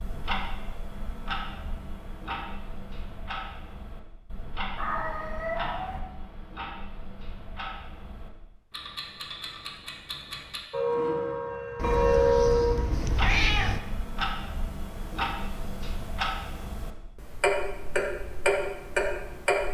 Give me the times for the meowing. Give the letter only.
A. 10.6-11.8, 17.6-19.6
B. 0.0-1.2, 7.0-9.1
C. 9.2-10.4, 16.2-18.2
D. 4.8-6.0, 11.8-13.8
D.